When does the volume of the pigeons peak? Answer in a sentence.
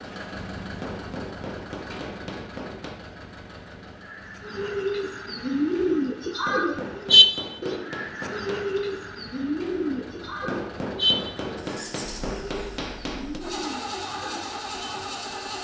The volume of the pigeons peaks at 7 seconds.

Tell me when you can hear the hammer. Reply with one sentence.
You can hear the hammer from 0.8 to 3.0 s, from 6.5 to 8.8 s and from 10.4 to 13.4 s.